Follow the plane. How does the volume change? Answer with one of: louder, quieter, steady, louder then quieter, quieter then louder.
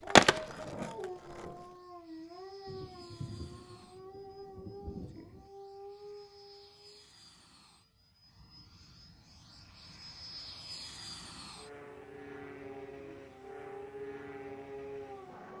louder.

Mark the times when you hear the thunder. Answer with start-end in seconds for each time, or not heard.
2.6-5.5.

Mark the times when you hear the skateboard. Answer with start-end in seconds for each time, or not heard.
0.1-1.5.